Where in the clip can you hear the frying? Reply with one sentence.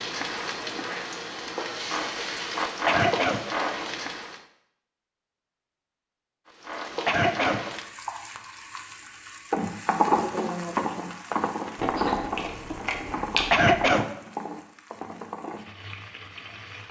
You can hear the frying from 0.0 to 4.5 s and from 6.5 to 16.8 s.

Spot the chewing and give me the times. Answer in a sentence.
The chewing can be heard from 11.8 to 13.7 s.